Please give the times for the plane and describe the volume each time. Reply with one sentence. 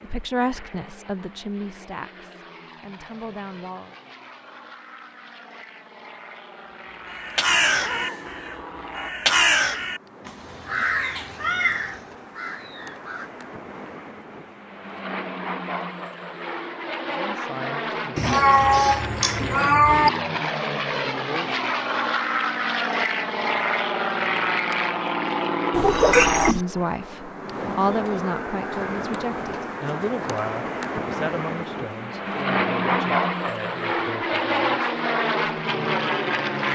The plane can be heard from 0.0 to 36.6 s, getting louder.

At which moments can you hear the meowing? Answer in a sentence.
You can hear the meowing from 7.5 to 8.3 s, from 18.1 to 20.1 s and from 25.7 to 26.6 s.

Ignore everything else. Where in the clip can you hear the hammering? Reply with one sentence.
The hammering can't be heard in this clip.